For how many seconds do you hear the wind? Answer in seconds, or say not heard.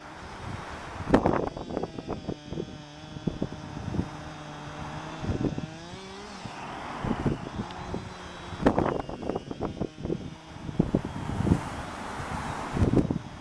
13 s.